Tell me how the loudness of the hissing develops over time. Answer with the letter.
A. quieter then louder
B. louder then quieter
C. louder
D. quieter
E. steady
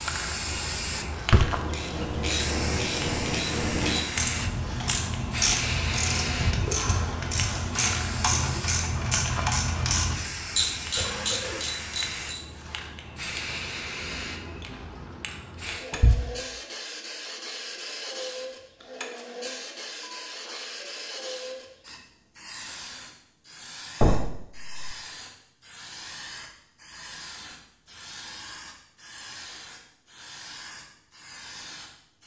D.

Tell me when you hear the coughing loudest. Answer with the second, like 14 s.
11 s.